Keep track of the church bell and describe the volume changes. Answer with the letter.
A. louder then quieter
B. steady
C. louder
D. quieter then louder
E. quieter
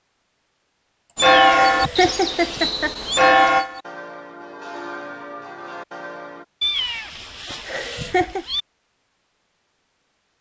E.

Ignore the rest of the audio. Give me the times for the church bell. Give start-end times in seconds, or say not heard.
1.1-6.5.